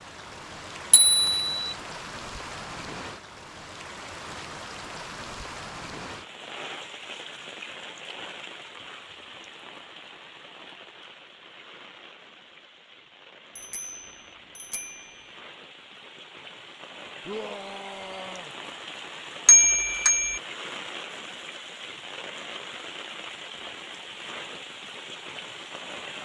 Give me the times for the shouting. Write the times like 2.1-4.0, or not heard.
17.2-18.6.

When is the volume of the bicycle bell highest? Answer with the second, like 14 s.
20 s.